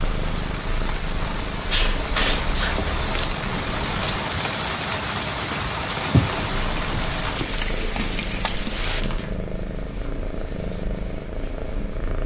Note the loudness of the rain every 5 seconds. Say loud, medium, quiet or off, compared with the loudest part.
loud, loud, off.